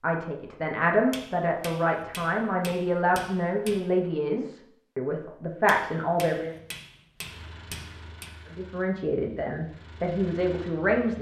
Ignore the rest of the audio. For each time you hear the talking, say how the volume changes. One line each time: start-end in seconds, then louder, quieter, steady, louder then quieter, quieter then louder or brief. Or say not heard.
0.0-6.5 steady
8.6-11.1 brief.